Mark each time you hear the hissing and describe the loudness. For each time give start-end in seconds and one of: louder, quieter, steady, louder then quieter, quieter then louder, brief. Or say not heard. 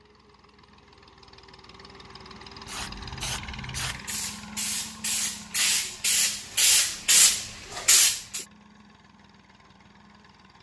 2.6-8.4 louder.